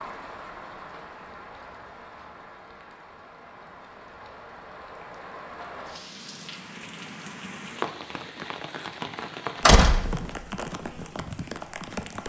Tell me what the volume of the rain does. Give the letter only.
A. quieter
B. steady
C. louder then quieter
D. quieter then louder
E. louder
E.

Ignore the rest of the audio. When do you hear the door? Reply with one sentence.
The door can be heard from 9.7 to 10.7 s.